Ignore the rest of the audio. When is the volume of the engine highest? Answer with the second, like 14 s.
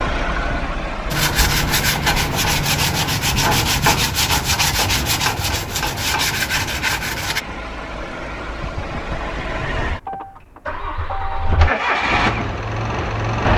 12 s.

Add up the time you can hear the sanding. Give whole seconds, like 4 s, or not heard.
6 s.